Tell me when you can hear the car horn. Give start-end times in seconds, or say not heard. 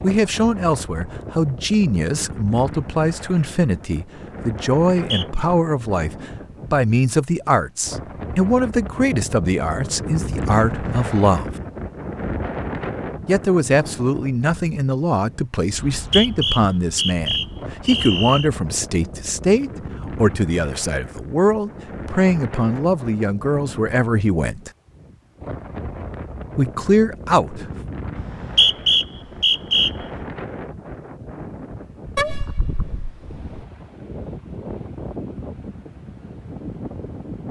32.1-33.5.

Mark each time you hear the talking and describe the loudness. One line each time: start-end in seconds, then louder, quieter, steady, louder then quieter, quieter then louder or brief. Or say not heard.
0.0-11.5 steady
13.2-24.7 steady
26.6-27.6 brief.